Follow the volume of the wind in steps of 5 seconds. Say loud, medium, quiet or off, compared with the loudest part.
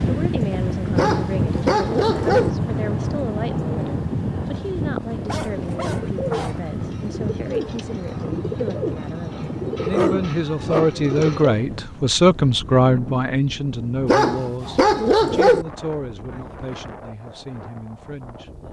loud, medium, medium, quiet.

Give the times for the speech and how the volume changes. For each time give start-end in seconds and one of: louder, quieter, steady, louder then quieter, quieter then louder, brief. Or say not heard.
0.0-18.5 louder then quieter.